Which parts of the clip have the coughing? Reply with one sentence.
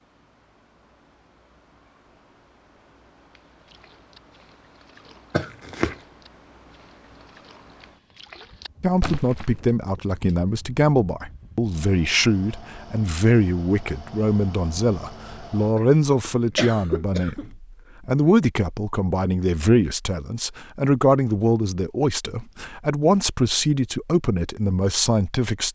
You can hear the coughing from 5.3 to 6.0 s and from 15.8 to 17.6 s.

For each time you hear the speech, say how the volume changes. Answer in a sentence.
You can hear the speech from 8.8 to 25.7 s, at a steady volume.